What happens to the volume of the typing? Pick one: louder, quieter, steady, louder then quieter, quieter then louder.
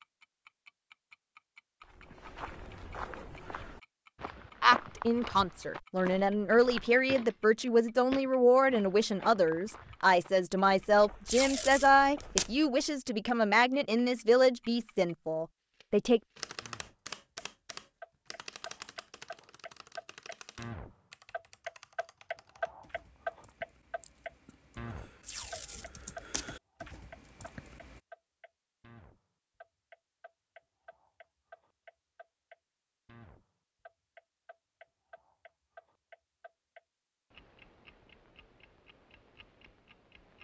quieter then louder.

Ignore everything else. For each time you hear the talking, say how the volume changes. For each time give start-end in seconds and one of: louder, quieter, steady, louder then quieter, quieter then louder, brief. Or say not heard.
4.6-16.2 steady.